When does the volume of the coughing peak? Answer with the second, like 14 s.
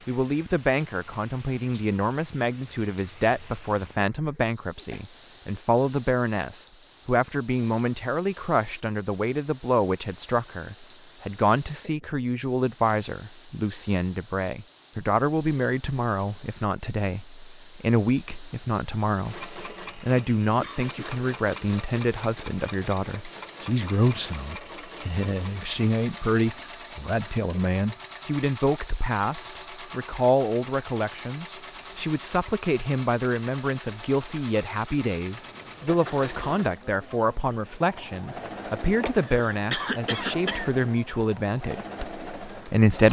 40 s.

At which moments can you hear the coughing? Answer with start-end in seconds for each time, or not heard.
4.2-5.0, 20.6-21.2, 39.0-40.7.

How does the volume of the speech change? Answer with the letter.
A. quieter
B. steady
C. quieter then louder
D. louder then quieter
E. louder
B.